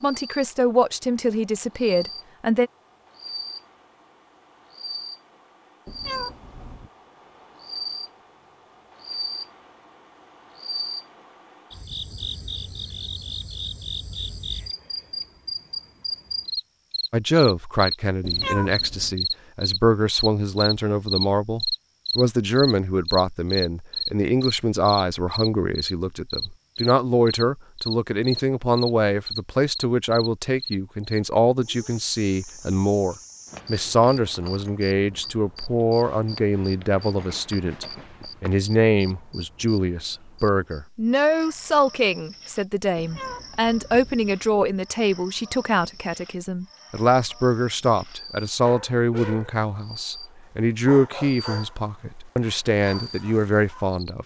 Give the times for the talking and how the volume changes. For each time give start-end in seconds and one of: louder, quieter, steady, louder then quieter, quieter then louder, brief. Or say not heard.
0.0-2.7 brief
17.1-54.2 steady.